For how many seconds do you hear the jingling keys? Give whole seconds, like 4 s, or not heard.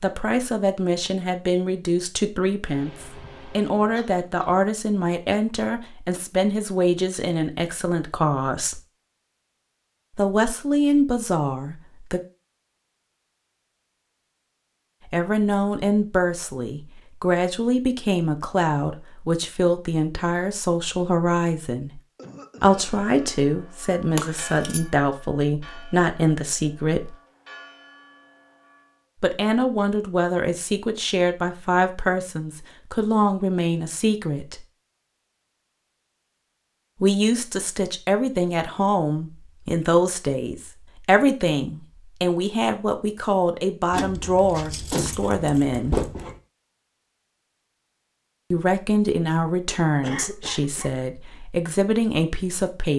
3 s.